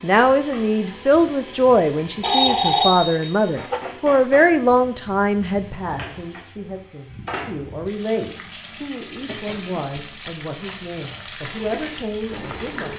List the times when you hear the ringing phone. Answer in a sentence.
The ringing phone can be heard from 2.2 to 3.9 s.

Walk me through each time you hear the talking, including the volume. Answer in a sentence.
You can hear the talking from 0.0 to 12.9 s, getting quieter.